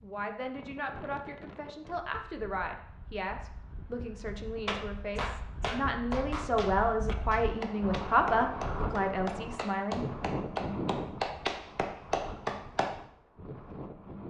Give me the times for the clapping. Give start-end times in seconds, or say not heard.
4.7-13.0.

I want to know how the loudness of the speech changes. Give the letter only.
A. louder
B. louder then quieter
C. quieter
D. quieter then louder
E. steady
A.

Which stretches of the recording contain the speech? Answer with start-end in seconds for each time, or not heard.
0.0-10.1.